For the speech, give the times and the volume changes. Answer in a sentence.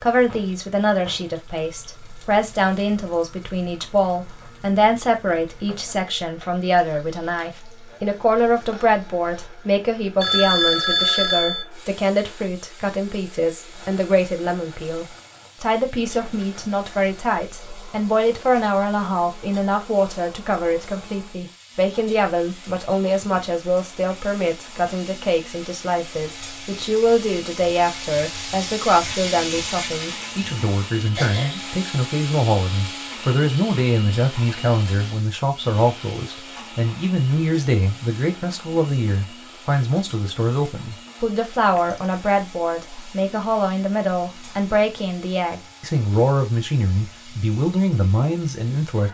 The speech can be heard from 0.0 to 49.0 s, at a steady volume.